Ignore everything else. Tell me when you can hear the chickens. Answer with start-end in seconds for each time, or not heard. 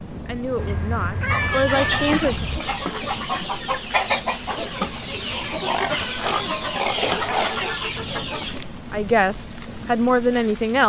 1.4-8.7.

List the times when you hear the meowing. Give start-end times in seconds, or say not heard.
0.6-2.6, 5.9-7.3.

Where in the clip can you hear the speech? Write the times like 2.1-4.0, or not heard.
0.2-2.5, 8.9-10.8.